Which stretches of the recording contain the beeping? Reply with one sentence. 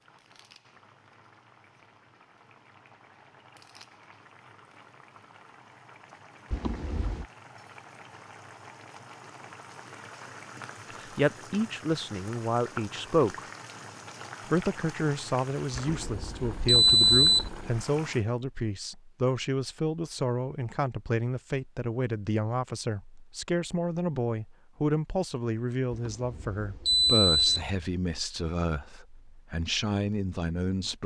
The beeping can be heard from 6.5 to 7.2 s, from 15.8 to 17.5 s and from 25.9 to 27.6 s.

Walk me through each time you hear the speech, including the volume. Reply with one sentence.
The speech can be heard briefly from 11.0 to 13.4 s; and from 14.5 to 31.0 s, at a steady volume.